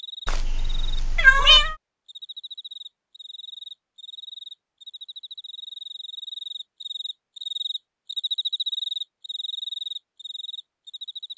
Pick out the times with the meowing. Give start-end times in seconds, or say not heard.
0.2-1.8.